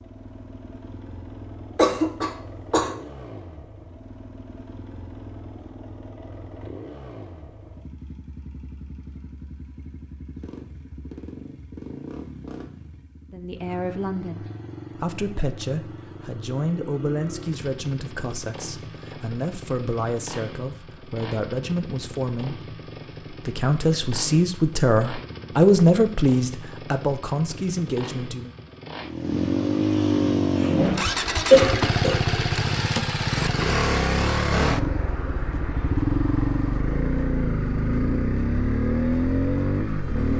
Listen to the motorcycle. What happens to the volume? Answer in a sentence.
The volume of the motorcycle goes up.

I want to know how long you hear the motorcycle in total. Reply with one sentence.
The motorcycle can be heard for 40 seconds in total.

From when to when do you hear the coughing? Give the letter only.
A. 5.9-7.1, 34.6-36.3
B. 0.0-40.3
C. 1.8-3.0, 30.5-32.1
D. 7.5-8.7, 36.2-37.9
C.